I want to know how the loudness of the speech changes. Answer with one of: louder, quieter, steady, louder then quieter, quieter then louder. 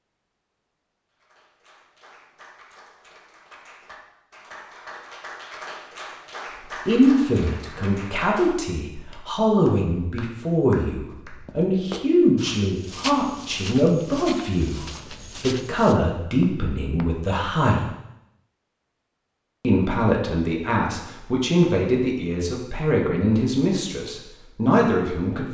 steady.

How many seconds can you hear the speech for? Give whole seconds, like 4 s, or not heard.
17 s.